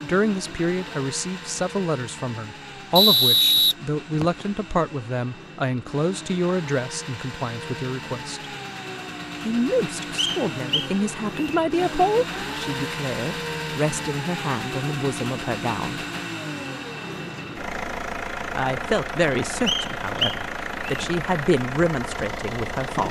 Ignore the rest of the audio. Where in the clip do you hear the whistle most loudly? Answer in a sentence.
The loudest moment of the whistle is at 3 seconds.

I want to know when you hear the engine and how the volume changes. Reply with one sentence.
The engine can be heard from 0.0 to 23.0 s, getting louder.